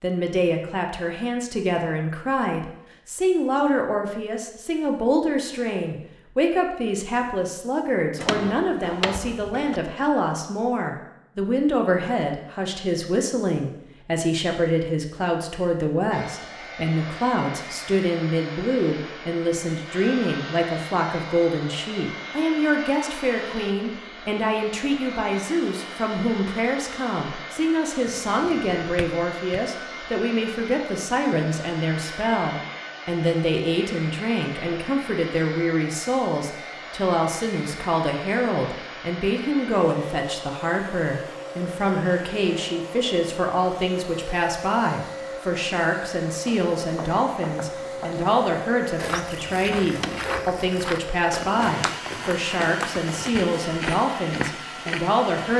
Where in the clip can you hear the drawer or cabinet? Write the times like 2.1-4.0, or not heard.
8.2-9.8, 28.1-29.6, 49.9-50.5.